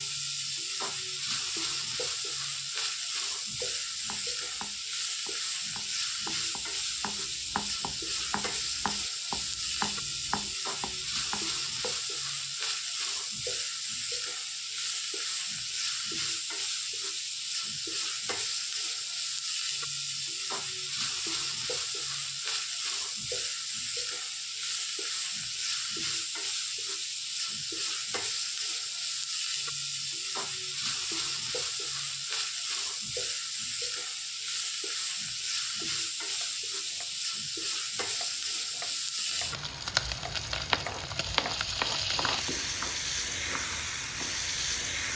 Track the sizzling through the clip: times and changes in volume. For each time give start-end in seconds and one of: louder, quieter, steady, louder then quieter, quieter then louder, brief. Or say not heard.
0.0-45.1 steady.